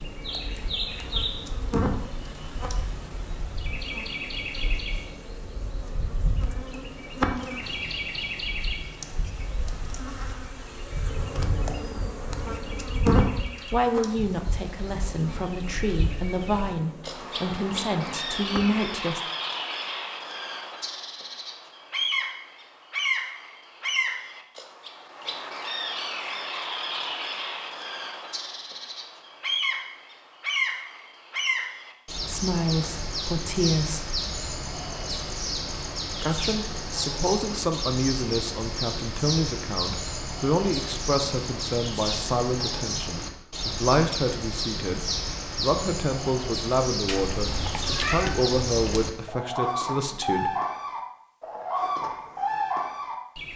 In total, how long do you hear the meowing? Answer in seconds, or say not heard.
2 s.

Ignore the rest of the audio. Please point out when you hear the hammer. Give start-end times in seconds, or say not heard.
not heard.